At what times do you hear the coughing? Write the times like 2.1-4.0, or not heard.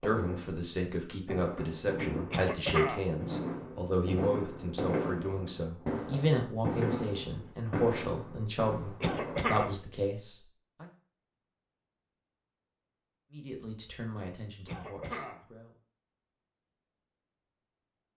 2.3-3.1, 9.0-9.8, 14.7-15.4.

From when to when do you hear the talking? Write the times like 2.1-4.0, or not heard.
0.0-10.8, 13.3-15.8.